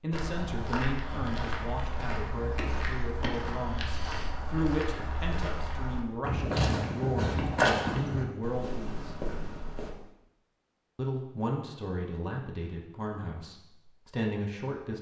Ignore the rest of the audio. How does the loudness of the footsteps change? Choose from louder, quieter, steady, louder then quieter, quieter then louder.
louder then quieter.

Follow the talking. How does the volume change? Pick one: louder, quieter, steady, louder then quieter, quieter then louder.
steady.